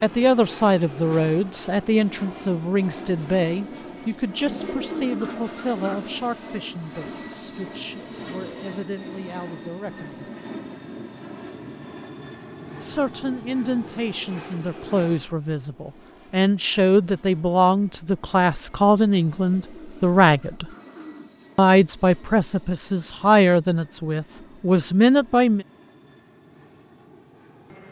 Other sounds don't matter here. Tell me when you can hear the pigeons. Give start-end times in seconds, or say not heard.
4.5-6.1, 19.3-21.3.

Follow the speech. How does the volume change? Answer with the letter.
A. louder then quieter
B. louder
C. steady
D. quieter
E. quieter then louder
E.